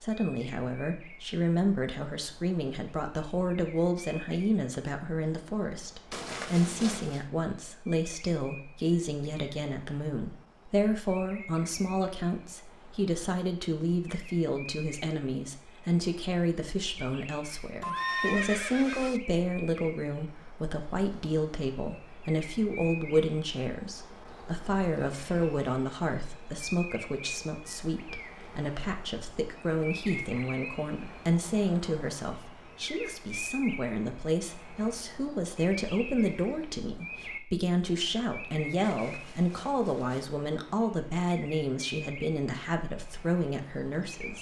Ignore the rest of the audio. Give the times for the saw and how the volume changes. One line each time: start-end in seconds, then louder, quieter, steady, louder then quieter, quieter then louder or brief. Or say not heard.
not heard.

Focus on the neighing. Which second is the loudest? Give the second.
18 s.